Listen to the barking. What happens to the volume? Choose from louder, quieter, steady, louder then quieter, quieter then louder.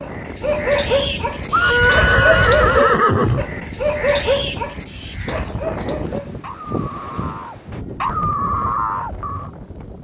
quieter then louder.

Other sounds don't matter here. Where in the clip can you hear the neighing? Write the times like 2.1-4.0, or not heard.
1.5-3.5.